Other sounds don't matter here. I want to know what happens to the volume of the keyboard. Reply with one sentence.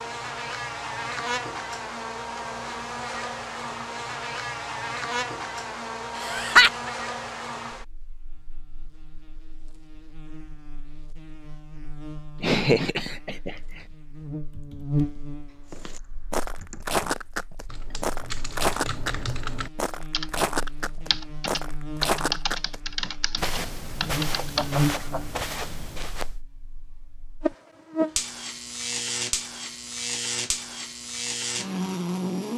The volume of the keyboard goes up.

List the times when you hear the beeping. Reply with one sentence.
The beeping can't be heard in this clip.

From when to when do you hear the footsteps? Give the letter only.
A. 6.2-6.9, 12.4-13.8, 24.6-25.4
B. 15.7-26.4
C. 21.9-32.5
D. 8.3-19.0
B.